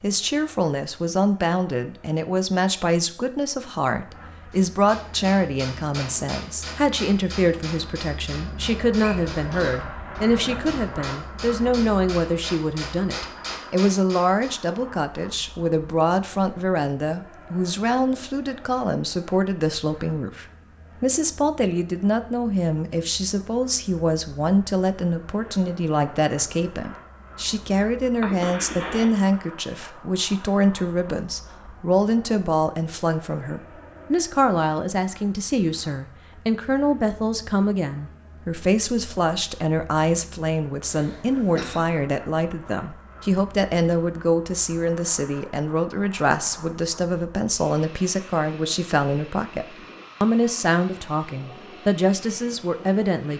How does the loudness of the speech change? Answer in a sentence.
The loudness of the speech stays about the same.